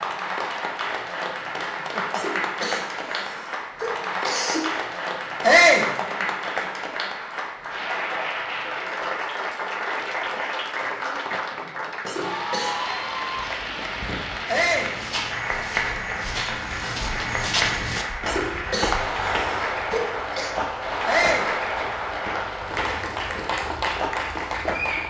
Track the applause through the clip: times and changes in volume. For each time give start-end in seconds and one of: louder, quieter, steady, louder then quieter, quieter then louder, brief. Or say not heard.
0.0-25.0 steady.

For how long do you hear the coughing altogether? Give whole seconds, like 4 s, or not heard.
6 s.